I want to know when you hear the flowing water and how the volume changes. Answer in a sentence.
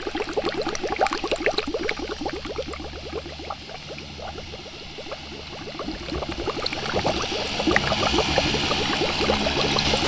The flowing water can be heard from 0.0 to 10.0 s, getting quieter then louder.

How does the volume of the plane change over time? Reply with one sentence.
The volume of the plane goes up.